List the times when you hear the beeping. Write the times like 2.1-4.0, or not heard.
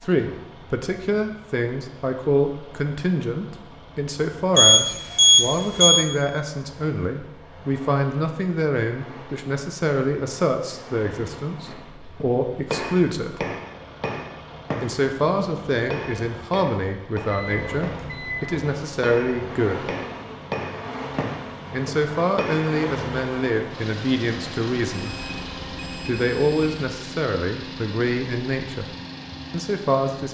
4.5-6.0, 17.2-18.4, 24.9-26.8.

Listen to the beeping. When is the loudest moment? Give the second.
5 s.